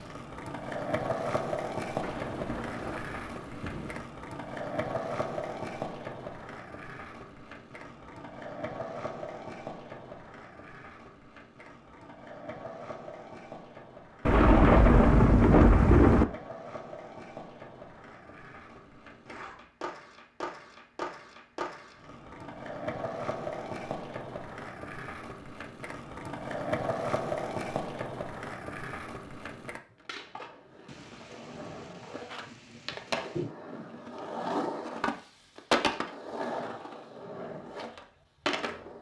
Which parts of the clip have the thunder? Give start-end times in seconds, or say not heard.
2.0-4.0, 14.2-16.2, 30.9-33.5.